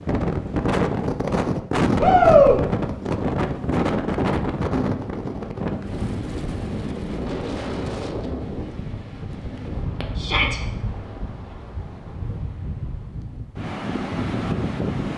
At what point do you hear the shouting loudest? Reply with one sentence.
The volume of the shouting peaks at 2 seconds.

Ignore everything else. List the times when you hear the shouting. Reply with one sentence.
The shouting can be heard from 2.0 to 2.6 s and from 10.2 to 10.6 s.